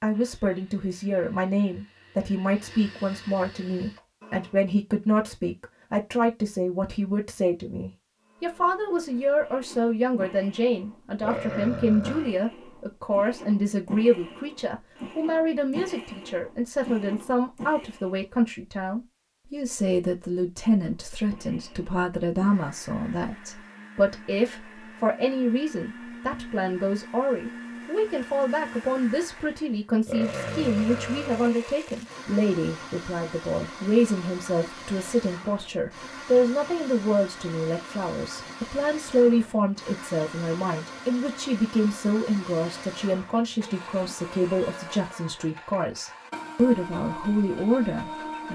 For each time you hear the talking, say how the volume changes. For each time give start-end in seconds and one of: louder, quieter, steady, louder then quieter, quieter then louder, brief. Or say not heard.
0.0-48.5 steady.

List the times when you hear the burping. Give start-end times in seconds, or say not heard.
11.2-12.3, 30.1-31.5.